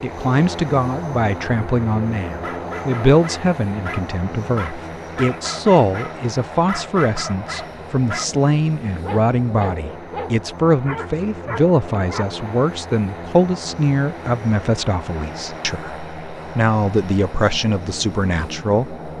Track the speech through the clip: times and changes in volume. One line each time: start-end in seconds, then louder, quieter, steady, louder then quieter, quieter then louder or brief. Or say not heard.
0.0-19.1 steady.